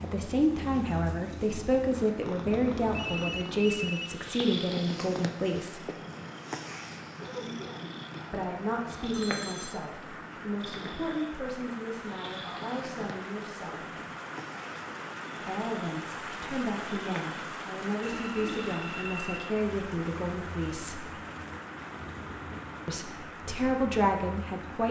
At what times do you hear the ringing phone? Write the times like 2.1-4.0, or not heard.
2.9-4.2, 9.1-9.8, 18.0-19.5.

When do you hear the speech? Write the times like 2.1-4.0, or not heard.
0.0-5.8, 8.3-13.9, 15.3-21.1, 22.9-24.8.